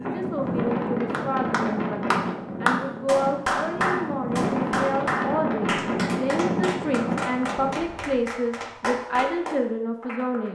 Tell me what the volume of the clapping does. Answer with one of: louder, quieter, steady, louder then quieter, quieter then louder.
quieter.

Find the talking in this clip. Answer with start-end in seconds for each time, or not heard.
0.0-10.5.